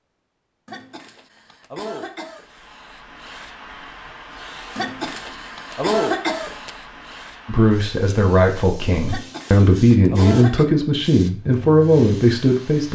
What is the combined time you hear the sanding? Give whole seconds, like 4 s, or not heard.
not heard.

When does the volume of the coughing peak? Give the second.
6 s.